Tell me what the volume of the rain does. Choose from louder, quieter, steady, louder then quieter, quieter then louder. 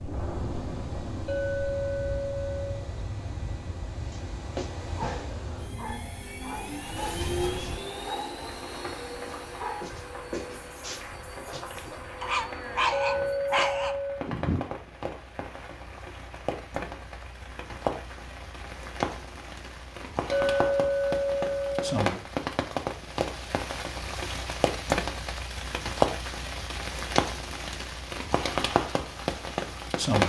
louder.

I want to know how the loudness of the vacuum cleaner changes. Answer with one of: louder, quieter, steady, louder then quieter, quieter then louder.
louder then quieter.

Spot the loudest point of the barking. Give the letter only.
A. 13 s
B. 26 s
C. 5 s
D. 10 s
A.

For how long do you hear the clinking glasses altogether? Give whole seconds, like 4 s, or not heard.
5 s.